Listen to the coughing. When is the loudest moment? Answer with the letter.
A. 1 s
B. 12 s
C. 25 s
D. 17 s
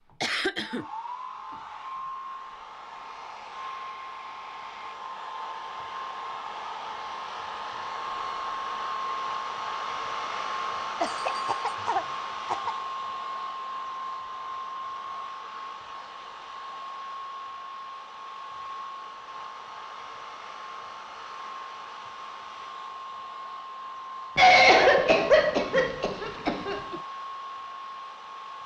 C.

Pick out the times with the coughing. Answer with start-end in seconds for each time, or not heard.
0.2-0.8, 11.0-12.8, 24.4-27.0.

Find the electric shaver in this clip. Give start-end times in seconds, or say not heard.
not heard.